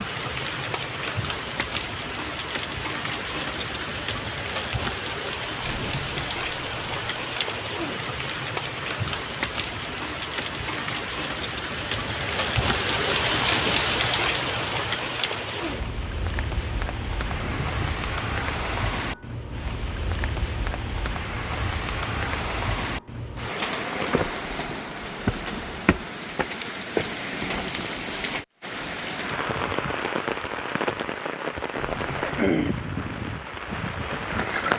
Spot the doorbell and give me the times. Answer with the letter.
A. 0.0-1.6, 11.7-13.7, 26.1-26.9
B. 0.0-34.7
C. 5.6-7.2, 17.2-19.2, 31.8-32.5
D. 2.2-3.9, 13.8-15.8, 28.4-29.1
C.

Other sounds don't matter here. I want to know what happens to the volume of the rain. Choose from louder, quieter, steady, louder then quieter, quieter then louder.
steady.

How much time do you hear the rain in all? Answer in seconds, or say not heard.
35 s.